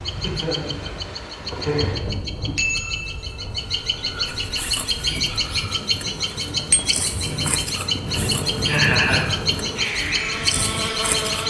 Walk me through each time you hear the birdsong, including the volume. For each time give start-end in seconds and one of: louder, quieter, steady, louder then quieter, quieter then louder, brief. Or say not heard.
0.0-11.4 louder.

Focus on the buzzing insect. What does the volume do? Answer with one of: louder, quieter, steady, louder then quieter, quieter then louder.
quieter then louder.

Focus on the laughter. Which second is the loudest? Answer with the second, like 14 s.
9 s.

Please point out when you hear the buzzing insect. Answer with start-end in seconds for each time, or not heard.
0.0-11.4.